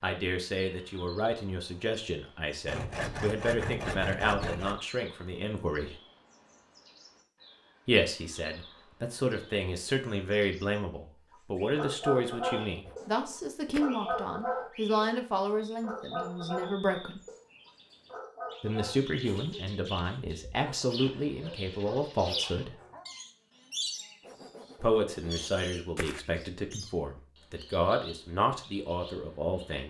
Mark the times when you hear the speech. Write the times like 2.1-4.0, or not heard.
0.0-6.0, 7.8-17.2, 18.6-22.8, 24.8-29.8.